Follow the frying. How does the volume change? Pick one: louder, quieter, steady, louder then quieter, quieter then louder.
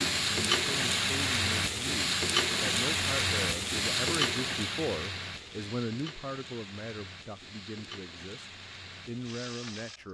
quieter.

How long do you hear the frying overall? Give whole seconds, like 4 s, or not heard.
10 s.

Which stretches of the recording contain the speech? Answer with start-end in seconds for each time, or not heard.
0.2-10.0.